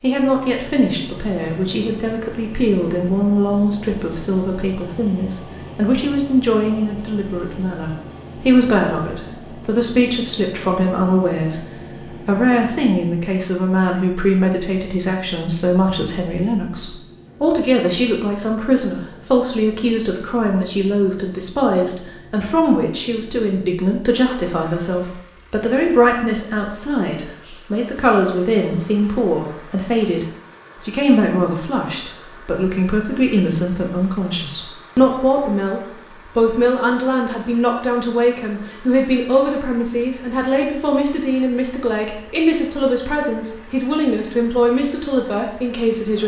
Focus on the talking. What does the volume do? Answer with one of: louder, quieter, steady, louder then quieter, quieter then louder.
steady.